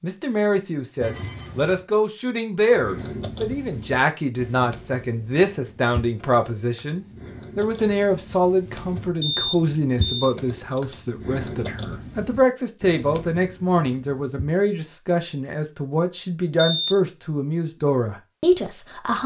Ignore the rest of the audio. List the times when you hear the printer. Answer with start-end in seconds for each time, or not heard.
not heard.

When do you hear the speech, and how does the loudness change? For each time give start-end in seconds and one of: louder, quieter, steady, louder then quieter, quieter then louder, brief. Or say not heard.
0.0-19.2 steady.